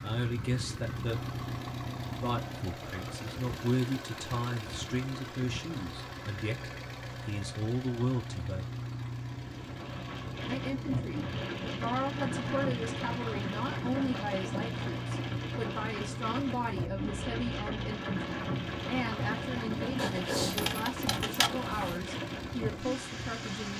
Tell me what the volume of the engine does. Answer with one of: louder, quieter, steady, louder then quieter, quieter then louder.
steady.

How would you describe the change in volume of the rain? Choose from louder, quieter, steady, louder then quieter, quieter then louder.
steady.